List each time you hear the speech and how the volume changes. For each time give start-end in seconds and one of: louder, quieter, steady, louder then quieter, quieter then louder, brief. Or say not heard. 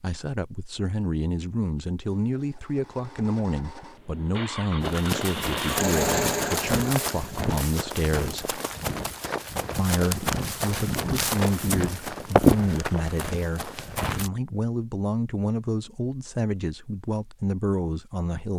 0.0-8.6 steady
9.8-18.5 steady.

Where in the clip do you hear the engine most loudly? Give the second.
6 s.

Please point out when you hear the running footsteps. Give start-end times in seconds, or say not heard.
4.8-14.3.